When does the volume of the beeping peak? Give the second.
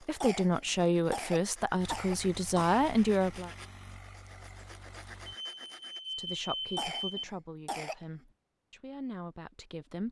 7 s.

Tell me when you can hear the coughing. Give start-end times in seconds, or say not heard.
0.2-2.9, 6.8-8.1.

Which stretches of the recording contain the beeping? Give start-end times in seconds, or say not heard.
5.2-7.2.